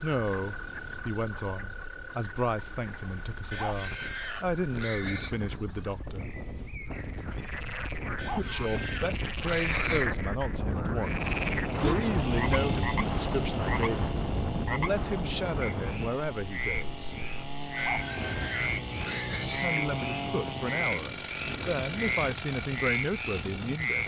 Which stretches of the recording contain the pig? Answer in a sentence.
You can hear the pig from 3.5 to 5.3 s, from 8.2 to 10.1 s and from 17.8 to 19.7 s.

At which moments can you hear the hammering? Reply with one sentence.
You can't hear the hammering here.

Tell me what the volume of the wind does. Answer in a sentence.
The volume of the wind goes up, then down.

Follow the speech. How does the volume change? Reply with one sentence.
The loudness of the speech stays about the same.